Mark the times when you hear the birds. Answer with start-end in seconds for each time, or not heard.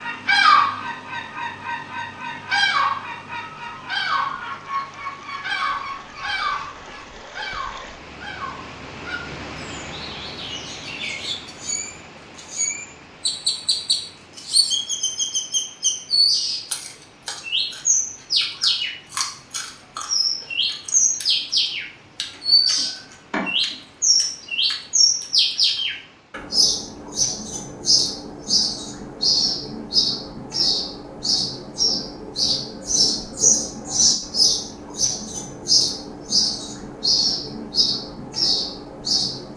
0.0-39.5.